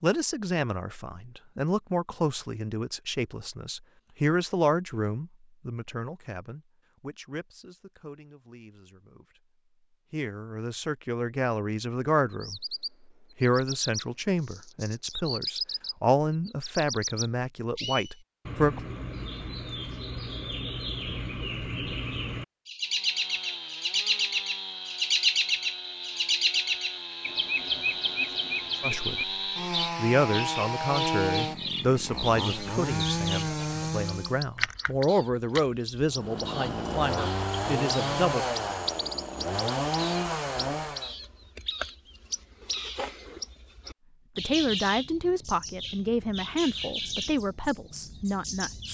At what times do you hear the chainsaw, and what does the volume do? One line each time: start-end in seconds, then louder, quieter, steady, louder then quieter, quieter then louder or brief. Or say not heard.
22.8-34.5 louder
36.1-41.1 steady.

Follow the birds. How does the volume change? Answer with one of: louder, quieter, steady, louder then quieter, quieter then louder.
louder then quieter.